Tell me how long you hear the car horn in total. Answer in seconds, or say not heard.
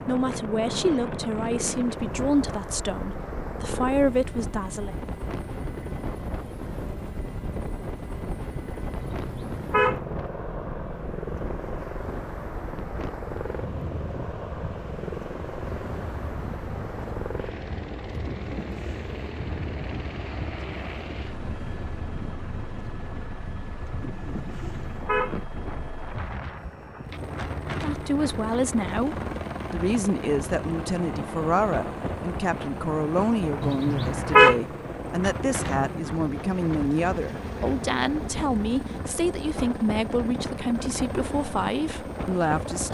3 s.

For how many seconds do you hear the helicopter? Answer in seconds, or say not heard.
43 s.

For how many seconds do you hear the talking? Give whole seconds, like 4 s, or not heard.
20 s.